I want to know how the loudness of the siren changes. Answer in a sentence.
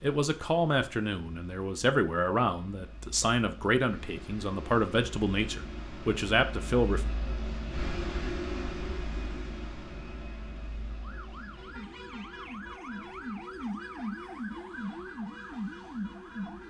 The volume of the siren goes up.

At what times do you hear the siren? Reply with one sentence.
The siren can be heard from 10.9 to 16.6 s.